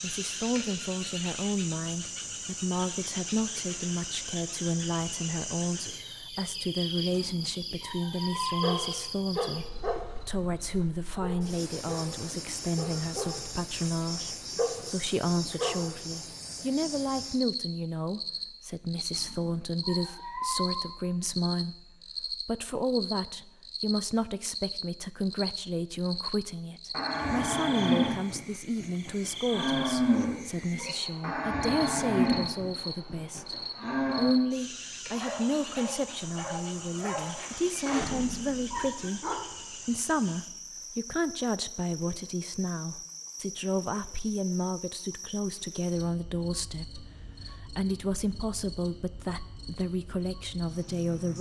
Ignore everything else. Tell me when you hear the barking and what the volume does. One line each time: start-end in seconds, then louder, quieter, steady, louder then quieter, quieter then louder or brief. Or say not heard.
8.6-15.9 quieter then louder
35.1-39.5 louder then quieter.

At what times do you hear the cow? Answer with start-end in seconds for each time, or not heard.
26.9-34.4.